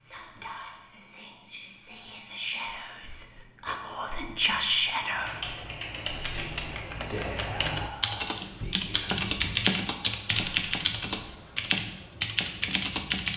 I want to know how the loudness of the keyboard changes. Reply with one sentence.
The volume of the keyboard goes up.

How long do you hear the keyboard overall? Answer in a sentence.
The keyboard can be heard for 8 seconds in total.